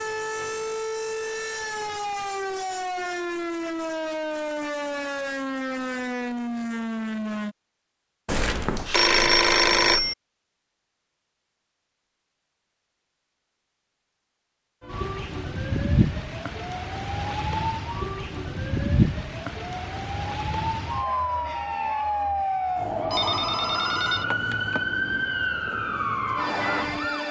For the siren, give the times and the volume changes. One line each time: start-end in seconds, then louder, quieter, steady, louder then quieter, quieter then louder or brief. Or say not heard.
0.0-7.5 steady
14.8-27.2 steady.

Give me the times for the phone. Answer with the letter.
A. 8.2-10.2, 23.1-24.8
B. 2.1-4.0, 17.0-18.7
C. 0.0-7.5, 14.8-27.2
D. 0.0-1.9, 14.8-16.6
A.